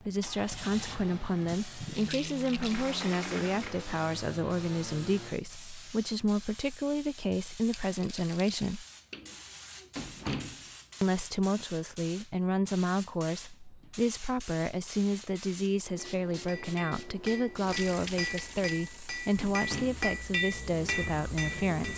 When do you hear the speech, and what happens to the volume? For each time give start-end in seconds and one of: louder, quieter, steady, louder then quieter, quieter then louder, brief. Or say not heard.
0.0-8.8 steady
11.0-21.9 steady.